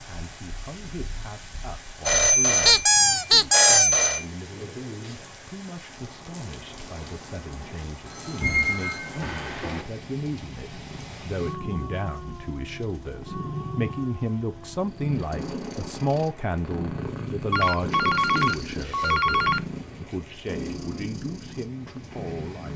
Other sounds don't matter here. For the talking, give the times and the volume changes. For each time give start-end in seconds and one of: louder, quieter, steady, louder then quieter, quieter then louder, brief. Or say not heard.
0.1-22.7 louder then quieter.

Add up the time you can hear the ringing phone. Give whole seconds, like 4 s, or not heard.
6 s.